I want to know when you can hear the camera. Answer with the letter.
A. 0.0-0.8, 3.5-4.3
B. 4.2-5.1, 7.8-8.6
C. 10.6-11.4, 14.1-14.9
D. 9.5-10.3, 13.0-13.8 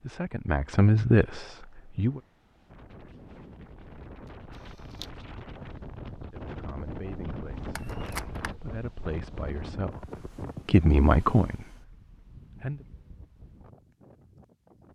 B.